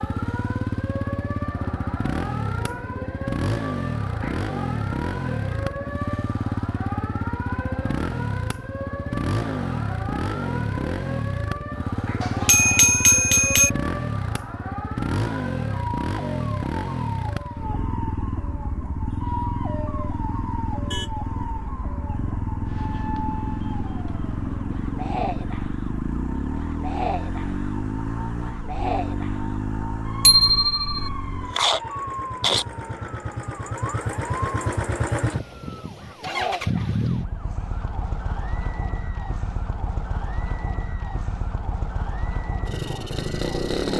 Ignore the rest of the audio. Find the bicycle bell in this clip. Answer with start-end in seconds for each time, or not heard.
12.2-13.7, 30.2-30.9.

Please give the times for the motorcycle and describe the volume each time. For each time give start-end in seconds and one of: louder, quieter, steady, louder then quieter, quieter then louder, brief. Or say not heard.
0.0-43.9 steady.